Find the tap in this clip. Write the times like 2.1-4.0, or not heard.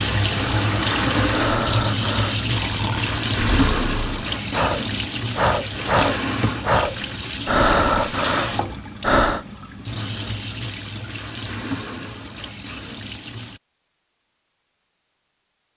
0.0-13.6.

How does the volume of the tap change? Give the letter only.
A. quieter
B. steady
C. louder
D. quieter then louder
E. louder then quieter
A.